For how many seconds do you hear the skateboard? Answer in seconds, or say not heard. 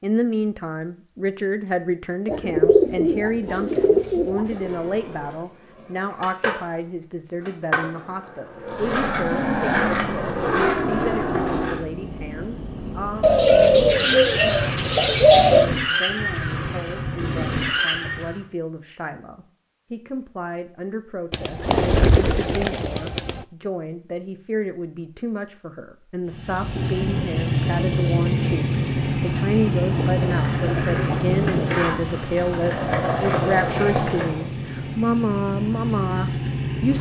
12 s.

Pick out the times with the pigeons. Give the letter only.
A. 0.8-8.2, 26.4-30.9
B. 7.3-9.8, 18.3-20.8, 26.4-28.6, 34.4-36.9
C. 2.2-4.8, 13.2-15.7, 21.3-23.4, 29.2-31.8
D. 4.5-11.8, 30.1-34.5
C.